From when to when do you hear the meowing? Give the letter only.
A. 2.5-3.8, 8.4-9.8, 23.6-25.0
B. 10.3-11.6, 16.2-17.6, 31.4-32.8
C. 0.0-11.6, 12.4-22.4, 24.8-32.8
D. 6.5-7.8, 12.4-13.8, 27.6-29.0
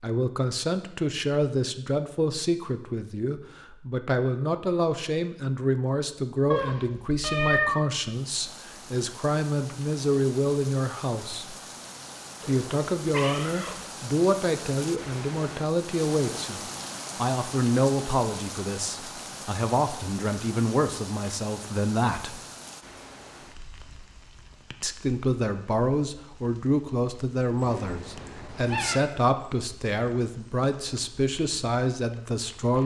D.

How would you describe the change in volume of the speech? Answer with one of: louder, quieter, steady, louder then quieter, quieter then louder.
steady.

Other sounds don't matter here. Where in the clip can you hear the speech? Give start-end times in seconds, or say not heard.
0.0-11.6, 12.4-22.4, 24.8-32.8.